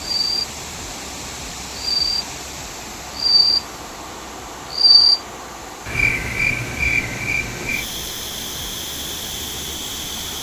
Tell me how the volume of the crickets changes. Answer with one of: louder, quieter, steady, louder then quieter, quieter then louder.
louder then quieter.